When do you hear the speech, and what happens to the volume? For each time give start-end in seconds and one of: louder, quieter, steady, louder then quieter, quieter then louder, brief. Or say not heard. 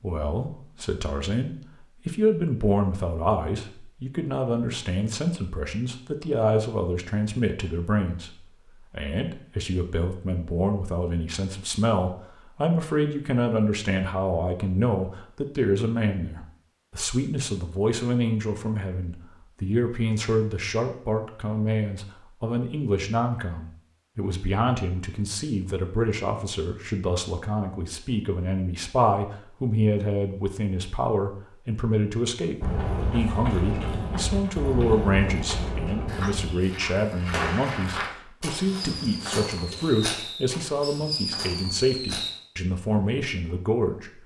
0.0-44.2 steady.